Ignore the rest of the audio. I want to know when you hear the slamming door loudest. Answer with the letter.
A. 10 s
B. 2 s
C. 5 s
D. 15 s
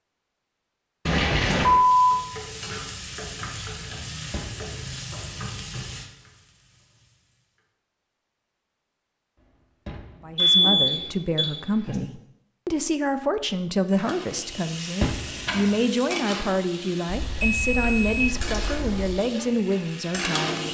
D.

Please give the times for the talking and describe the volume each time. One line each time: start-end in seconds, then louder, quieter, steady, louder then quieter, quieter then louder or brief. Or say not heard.
10.2-20.6 steady.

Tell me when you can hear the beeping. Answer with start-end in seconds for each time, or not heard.
1.1-2.2, 10.3-11.9, 17.1-19.1.